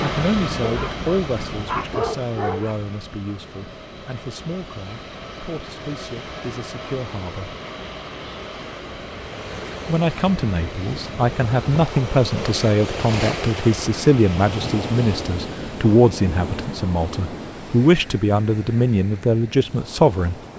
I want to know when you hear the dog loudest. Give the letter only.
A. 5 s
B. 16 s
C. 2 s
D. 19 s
C.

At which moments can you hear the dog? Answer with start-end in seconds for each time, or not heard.
0.0-2.8.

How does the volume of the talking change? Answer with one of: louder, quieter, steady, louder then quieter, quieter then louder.
quieter then louder.